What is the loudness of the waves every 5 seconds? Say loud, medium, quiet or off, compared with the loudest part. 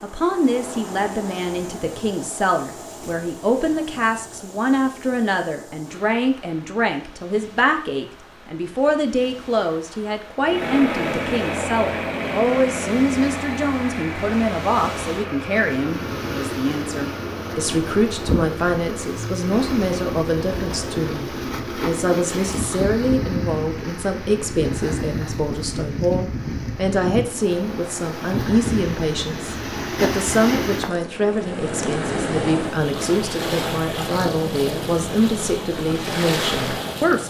medium, quiet, medium, loud, loud, loud, loud, loud.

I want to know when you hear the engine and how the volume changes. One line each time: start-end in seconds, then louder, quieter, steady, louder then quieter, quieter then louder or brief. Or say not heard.
10.4-19.5 quieter.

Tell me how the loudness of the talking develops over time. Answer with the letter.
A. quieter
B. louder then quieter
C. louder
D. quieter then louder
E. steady
E.